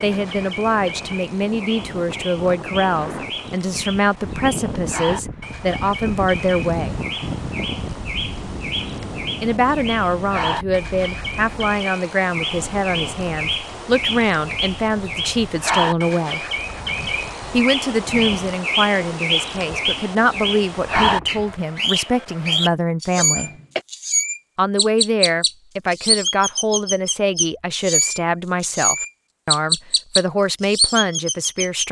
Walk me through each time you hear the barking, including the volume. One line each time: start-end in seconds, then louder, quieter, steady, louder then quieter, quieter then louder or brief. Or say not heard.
not heard.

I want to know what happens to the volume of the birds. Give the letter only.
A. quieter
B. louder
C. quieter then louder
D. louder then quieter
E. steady
B.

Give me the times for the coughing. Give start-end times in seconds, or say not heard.
23.1-23.9.